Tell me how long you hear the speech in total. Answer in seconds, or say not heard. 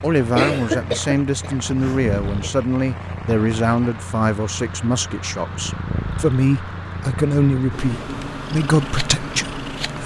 10 s.